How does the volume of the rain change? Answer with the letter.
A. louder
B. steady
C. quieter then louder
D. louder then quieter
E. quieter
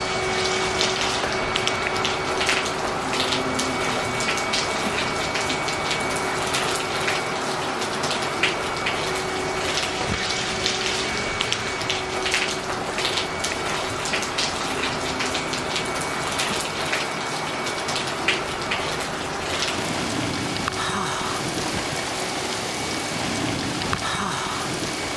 B.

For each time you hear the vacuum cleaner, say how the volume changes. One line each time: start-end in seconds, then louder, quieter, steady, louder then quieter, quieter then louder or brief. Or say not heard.
0.0-25.1 quieter.